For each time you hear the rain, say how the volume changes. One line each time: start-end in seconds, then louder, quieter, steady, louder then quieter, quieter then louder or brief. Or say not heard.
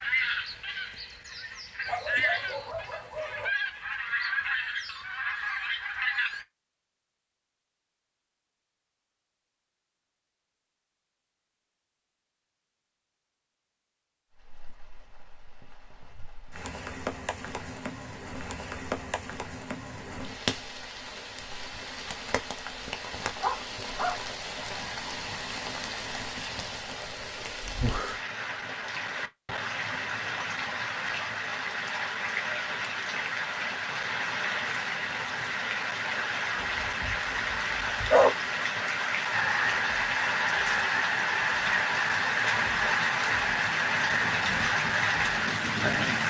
14.3-46.2 louder.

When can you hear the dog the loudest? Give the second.
38 s.